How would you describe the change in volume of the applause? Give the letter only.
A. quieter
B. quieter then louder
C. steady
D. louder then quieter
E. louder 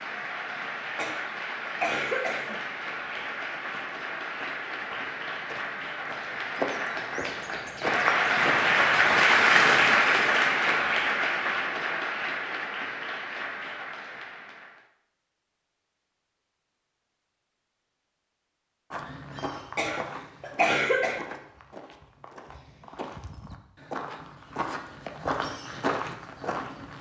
D.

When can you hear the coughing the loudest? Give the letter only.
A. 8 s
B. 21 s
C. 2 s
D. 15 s
B.